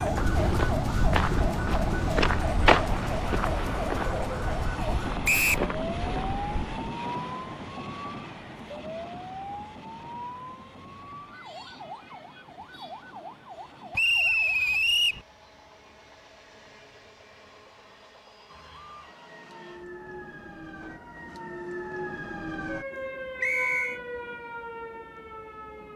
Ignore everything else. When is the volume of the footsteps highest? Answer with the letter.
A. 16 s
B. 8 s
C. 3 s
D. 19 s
C.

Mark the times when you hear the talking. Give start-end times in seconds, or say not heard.
not heard.